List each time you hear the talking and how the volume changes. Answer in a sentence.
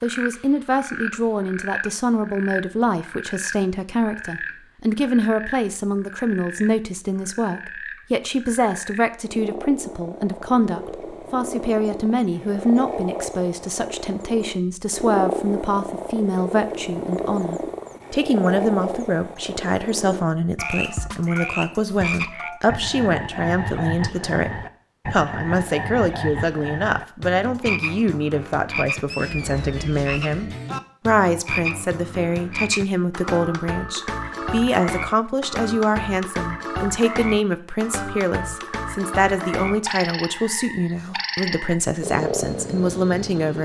The talking can be heard from 0.0 to 43.5 s, at a steady volume.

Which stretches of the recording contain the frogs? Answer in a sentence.
The frogs can be heard from 0.0 to 43.5 s.